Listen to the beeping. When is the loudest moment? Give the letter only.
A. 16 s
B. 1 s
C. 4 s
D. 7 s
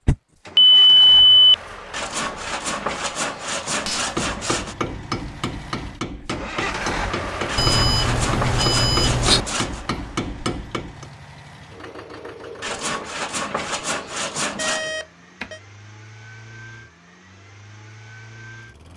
B.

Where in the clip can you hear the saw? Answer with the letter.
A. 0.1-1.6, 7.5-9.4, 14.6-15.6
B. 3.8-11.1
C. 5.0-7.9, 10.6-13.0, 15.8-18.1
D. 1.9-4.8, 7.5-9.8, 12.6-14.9
D.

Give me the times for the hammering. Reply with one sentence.
You can hear the hammering from 3.8 to 11.1 s.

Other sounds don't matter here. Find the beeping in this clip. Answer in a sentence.
The beeping can be heard from 0.1 to 1.6 s, from 7.5 to 9.4 s and from 14.6 to 15.6 s.